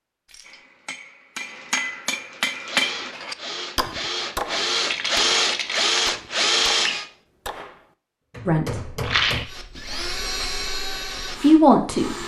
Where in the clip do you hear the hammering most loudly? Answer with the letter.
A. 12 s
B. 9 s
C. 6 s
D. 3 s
D.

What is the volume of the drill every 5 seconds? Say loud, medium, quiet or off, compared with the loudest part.
medium, loud, medium.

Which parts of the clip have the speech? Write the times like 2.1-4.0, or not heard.
8.4-8.9, 11.4-12.2.